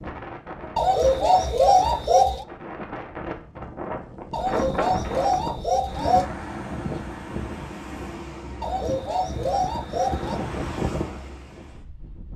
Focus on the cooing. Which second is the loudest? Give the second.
2 s.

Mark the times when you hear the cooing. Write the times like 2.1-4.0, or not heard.
0.8-2.5, 4.3-6.3, 8.6-10.4.